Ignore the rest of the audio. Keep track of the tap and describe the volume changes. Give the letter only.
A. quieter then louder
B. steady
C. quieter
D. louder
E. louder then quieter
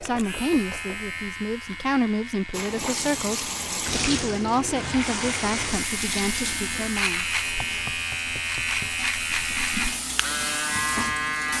A.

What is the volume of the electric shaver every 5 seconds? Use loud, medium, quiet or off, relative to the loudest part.
medium, loud, loud.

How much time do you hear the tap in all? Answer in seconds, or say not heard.
9 s.